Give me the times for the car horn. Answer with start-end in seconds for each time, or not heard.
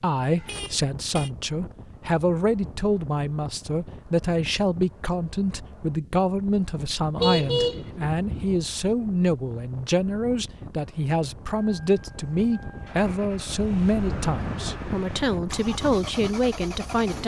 0.3-1.3, 7.2-8.4, 13.6-14.7.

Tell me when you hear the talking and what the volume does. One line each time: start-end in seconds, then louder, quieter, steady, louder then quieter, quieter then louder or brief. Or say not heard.
0.0-17.2 steady.